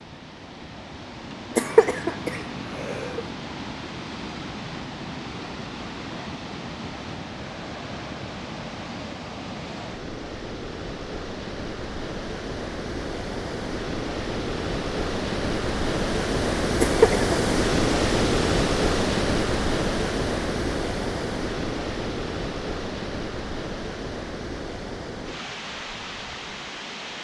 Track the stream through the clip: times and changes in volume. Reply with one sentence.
The stream can be heard from 0.0 to 27.1 s, getting louder then quieter.